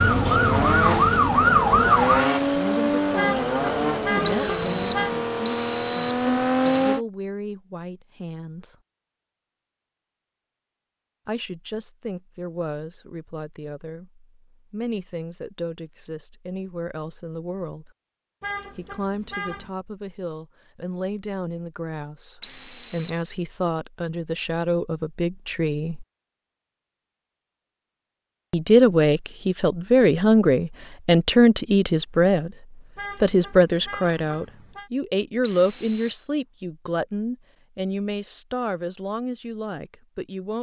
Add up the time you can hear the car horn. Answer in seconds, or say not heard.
5 s.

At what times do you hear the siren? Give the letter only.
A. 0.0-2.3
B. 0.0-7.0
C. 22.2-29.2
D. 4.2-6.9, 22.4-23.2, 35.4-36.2
A.